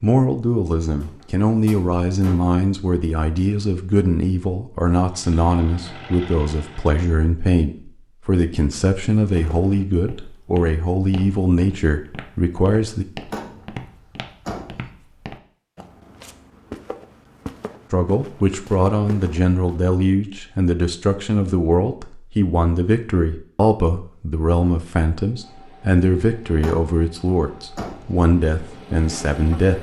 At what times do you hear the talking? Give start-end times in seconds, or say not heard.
0.0-13.1, 17.9-29.7.